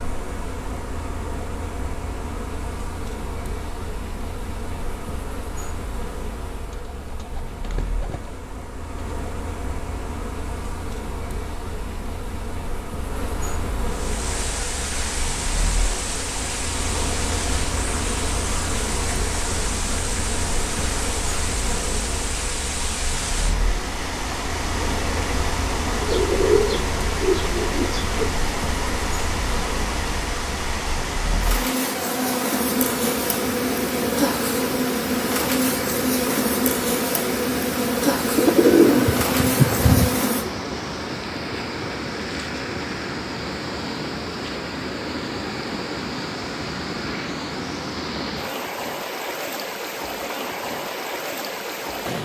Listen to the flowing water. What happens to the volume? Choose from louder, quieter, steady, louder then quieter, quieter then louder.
steady.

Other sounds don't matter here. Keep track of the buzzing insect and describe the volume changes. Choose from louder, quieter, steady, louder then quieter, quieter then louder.
louder.